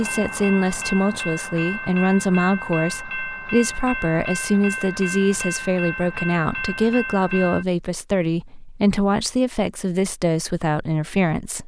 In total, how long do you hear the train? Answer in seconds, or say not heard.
8 s.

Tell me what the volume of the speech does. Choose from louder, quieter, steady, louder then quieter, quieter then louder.
steady.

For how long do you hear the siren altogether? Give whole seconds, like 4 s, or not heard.
not heard.